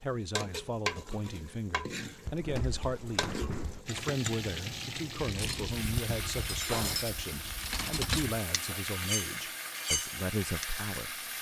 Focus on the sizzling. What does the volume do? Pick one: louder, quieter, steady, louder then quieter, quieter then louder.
steady.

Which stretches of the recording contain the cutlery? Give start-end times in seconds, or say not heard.
5.2-10.7.